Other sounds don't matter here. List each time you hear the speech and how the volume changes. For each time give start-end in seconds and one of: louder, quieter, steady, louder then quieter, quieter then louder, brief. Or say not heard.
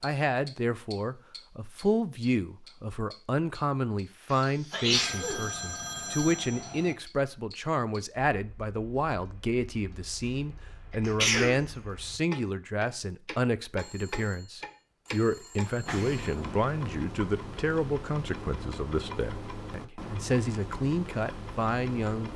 0.0-22.3 steady.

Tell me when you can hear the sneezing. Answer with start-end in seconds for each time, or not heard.
4.3-5.4, 10.9-11.6, 15.7-16.3.